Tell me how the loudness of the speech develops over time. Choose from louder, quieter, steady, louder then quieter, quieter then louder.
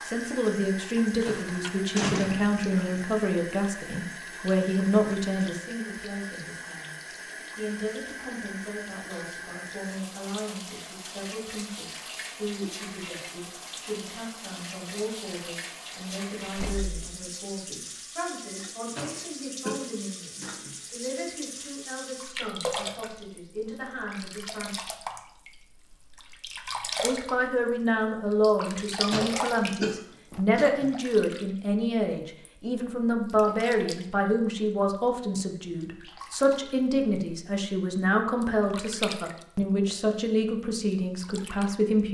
quieter then louder.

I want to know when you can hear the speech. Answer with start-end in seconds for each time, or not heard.
0.1-24.7, 27.0-42.0.